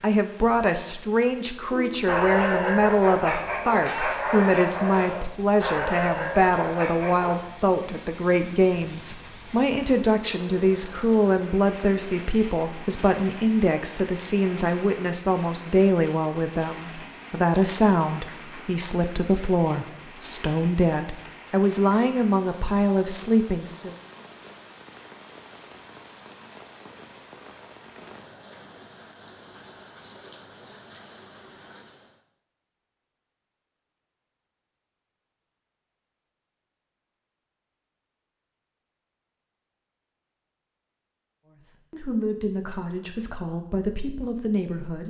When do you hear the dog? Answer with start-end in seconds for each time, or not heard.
1.6-7.4.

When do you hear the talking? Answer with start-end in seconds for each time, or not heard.
0.0-23.9, 41.5-45.0.